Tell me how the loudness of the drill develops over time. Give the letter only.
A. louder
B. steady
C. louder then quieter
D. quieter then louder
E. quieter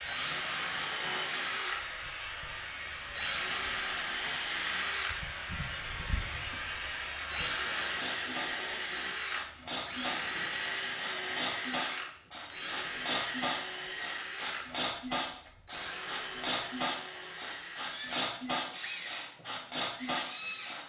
E.